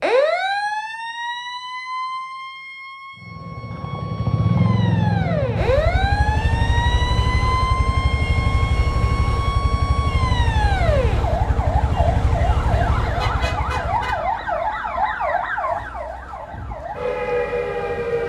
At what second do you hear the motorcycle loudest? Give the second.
5 s.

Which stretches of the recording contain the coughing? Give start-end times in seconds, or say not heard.
not heard.